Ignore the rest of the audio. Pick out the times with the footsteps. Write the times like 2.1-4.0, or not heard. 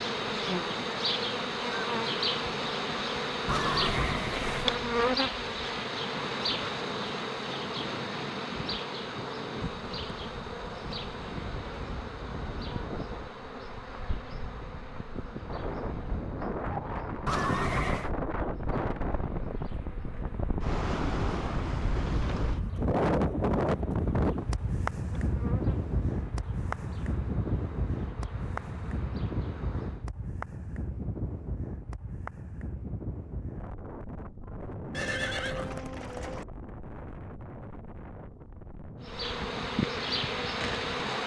not heard.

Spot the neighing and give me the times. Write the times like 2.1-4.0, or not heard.
3.5-4.8, 17.2-18.1, 34.9-36.5.